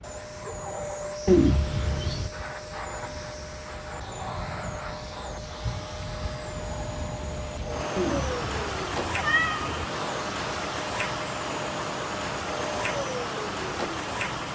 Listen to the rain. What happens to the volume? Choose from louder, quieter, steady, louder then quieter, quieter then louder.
louder.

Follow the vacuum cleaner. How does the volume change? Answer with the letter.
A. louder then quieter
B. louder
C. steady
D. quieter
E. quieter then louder
C.